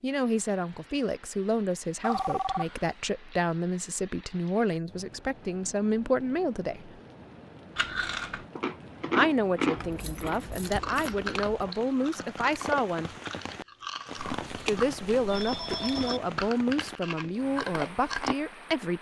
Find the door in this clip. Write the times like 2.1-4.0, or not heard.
not heard.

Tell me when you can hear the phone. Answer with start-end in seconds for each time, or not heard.
2.0-2.9, 14.2-16.2.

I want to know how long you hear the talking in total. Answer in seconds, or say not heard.
15 s.